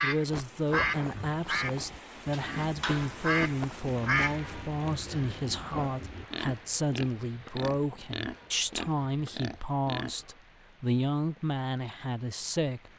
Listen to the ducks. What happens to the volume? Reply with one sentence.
The loudness of the ducks goes down, then up.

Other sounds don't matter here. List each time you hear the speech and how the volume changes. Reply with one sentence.
You can hear the speech from 0.0 to 12.9 s, at a steady volume.